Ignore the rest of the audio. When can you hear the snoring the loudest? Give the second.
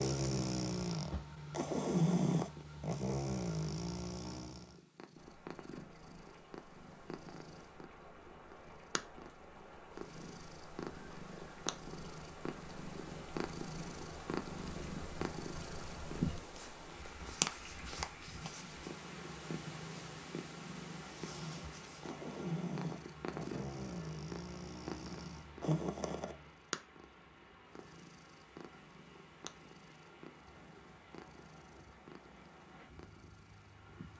2 s.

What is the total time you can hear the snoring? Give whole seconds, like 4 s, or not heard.
10 s.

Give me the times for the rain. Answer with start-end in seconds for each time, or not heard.
5.2-34.1.